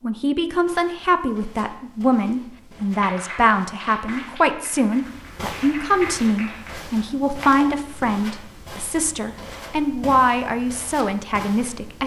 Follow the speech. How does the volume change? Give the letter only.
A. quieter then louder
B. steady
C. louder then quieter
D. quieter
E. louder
B.